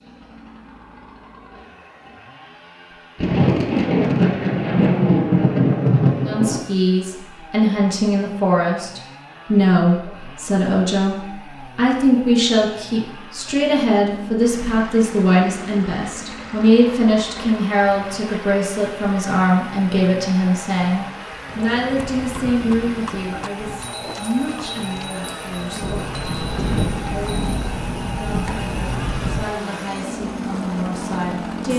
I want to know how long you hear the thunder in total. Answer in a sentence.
You can hear the thunder for 7 seconds altogether.